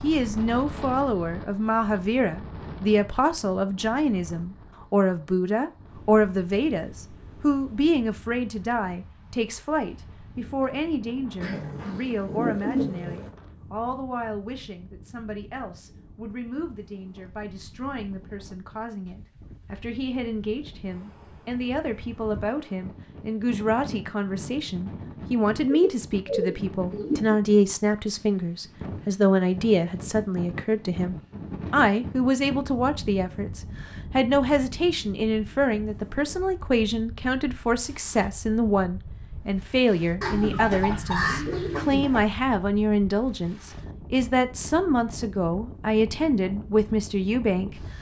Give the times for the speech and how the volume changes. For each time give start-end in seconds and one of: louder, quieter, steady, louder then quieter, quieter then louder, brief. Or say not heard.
0.0-47.9 quieter then louder.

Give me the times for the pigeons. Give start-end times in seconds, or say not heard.
11.4-13.3, 25.6-27.4, 40.2-42.2.